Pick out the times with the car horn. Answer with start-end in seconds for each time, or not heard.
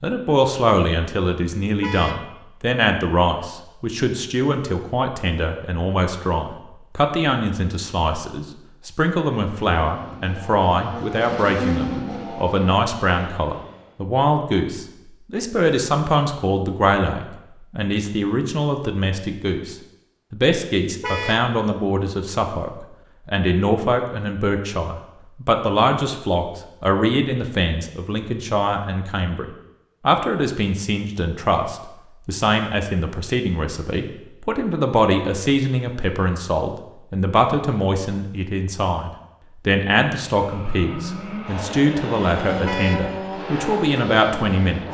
1.8-2.2, 21.0-21.5, 42.6-43.1.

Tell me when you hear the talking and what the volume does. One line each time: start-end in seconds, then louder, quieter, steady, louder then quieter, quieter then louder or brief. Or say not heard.
0.0-29.4 steady
30.1-44.8 steady.